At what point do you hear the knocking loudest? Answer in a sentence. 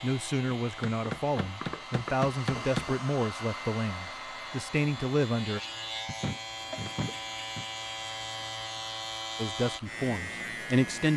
The volume of the knocking peaks at 7 seconds.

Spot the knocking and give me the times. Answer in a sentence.
The knocking can be heard from 1.1 to 3.0 s and from 6.0 to 7.7 s.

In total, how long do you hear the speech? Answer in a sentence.
The speech can be heard for 7 seconds in total.